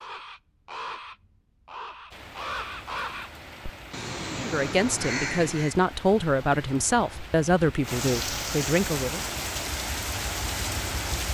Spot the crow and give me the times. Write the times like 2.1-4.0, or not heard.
0.0-5.8.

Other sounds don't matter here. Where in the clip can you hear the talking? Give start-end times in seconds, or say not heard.
4.4-9.2.